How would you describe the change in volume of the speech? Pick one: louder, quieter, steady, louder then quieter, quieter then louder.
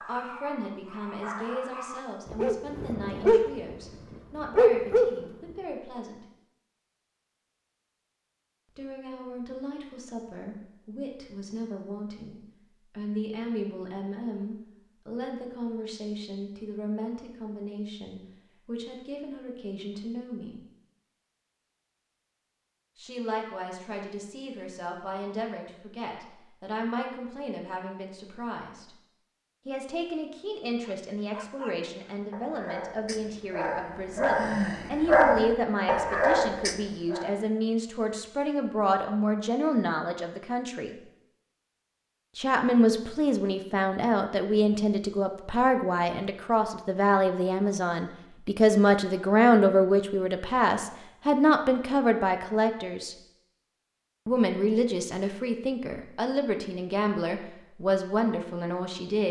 louder.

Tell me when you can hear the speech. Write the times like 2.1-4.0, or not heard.
0.0-6.2, 8.8-20.6, 22.9-28.9, 29.6-41.0, 42.4-53.1, 54.2-59.2.